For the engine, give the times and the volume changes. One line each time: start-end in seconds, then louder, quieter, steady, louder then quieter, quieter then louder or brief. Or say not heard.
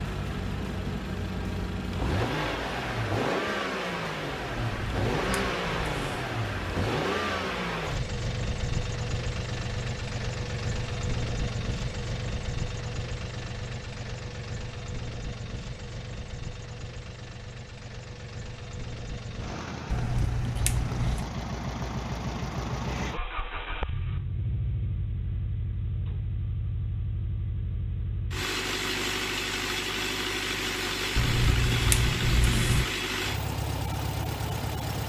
0.0-35.0 quieter then louder.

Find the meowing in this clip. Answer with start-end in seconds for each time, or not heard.
4.5-6.2, 19.9-21.2, 31.1-32.9.